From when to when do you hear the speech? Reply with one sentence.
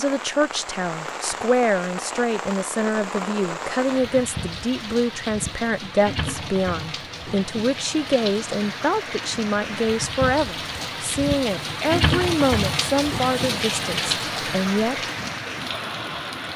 The speech can be heard from 0.0 to 15.1 s.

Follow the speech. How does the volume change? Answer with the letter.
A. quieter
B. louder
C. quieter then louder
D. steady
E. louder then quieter
D.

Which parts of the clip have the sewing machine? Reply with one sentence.
The sewing machine can't be heard in this clip.